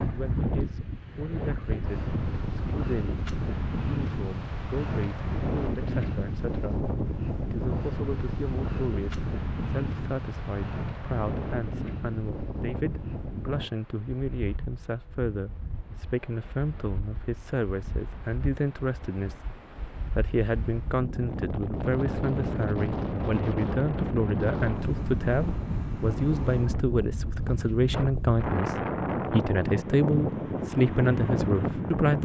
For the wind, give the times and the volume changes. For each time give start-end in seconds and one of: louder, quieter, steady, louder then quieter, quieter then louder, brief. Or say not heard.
0.0-32.2 quieter then louder.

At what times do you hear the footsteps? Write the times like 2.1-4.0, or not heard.
not heard.